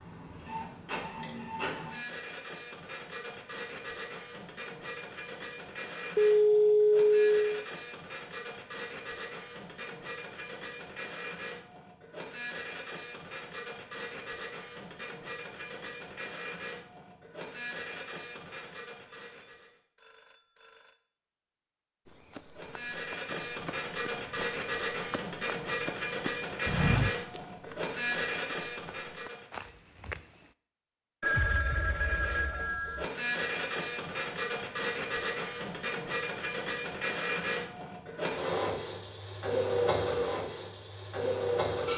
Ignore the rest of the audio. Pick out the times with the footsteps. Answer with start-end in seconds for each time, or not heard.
22.4-30.5.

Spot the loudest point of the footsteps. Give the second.
27 s.